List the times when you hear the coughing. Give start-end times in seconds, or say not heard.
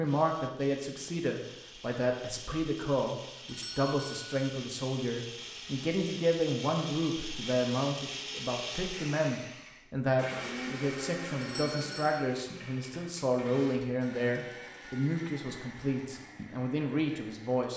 not heard.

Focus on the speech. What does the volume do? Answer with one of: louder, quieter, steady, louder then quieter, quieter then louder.
steady.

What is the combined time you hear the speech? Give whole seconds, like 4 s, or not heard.
18 s.